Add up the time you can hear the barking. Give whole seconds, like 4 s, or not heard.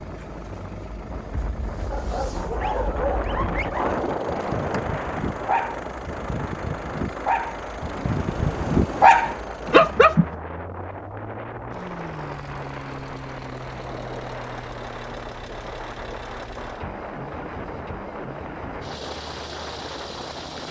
8 s.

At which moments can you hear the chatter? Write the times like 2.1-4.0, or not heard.
not heard.